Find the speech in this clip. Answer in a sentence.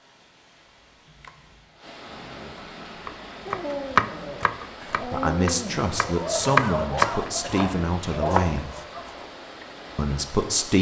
The speech can be heard from 4.9 to 8.7 s and from 9.9 to 10.7 s.